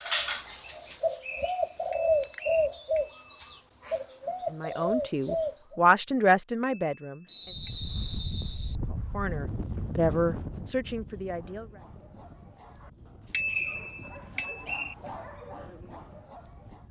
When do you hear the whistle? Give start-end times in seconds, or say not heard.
1.2-2.7, 7.2-8.8, 13.1-14.9.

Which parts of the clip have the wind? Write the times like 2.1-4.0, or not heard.
7.5-16.8.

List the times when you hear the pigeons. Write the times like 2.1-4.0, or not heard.
0.0-5.8.